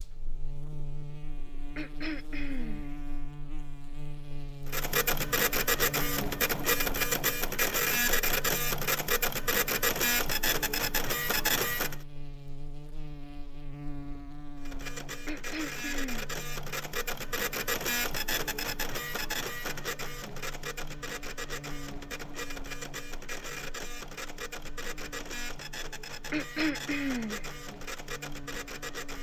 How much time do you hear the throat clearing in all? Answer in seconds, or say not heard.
3 s.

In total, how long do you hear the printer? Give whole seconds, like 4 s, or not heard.
22 s.